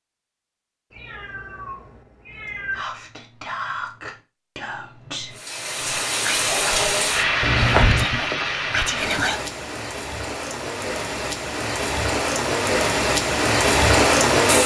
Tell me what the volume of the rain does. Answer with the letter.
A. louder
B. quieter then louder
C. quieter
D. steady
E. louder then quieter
B.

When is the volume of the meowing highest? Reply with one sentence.
The volume of the meowing peaks at 8 seconds.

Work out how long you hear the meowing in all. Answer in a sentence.
You can hear the meowing for 3 seconds altogether.